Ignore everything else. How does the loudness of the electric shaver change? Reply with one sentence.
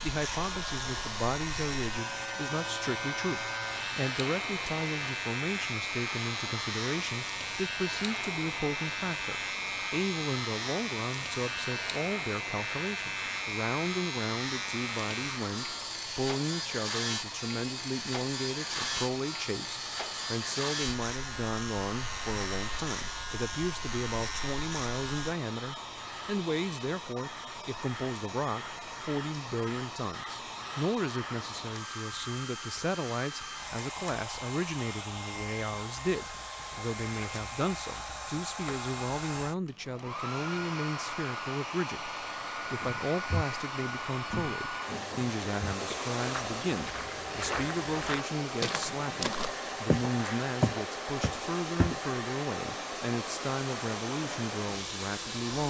The volume of the electric shaver stays about the same.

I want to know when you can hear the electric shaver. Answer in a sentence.
The electric shaver can be heard from 0.0 to 25.4 s.